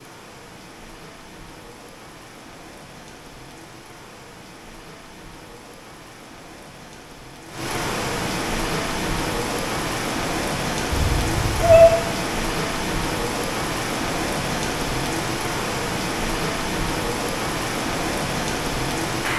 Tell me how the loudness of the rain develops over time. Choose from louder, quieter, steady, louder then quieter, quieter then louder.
louder.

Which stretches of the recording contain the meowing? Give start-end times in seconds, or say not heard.
11.0-11.9.